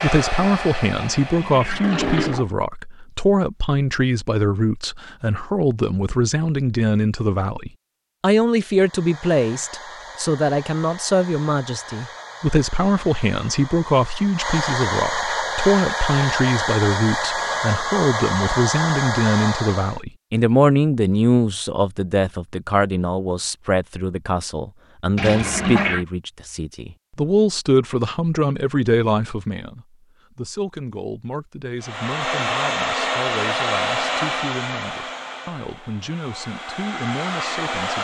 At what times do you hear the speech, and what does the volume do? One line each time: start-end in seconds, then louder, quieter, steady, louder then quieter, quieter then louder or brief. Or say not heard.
0.0-37.9 quieter.